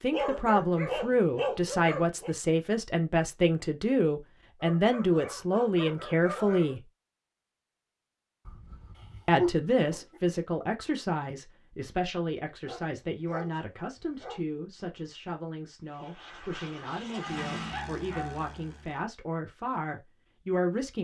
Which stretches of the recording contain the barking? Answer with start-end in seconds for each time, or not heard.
0.1-2.3, 4.6-6.8, 8.4-10.2, 12.7-14.4, 17.1-18.4.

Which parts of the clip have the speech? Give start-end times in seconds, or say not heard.
0.0-6.8, 9.2-21.0.